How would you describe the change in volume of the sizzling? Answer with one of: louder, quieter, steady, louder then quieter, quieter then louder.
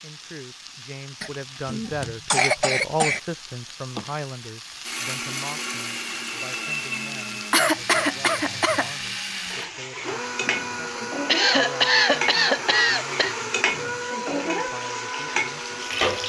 louder.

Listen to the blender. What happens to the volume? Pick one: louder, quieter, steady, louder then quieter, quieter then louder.
steady.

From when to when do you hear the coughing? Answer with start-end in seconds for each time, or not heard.
1.2-3.2, 7.5-8.9, 11.2-13.3.